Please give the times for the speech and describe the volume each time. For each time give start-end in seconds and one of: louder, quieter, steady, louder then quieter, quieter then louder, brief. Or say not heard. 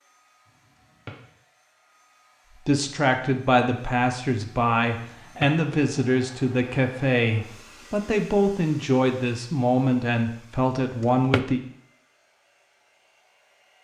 2.5-11.6 steady.